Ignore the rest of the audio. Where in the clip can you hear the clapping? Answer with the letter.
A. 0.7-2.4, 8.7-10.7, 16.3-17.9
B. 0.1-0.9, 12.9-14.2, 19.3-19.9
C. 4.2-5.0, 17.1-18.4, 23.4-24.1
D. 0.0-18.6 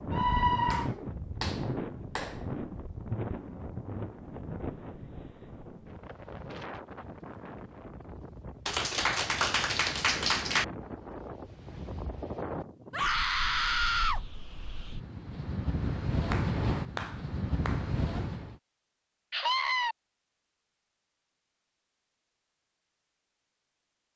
A.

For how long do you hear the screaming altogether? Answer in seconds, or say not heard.
3 s.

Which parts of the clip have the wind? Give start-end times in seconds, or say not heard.
0.0-18.6.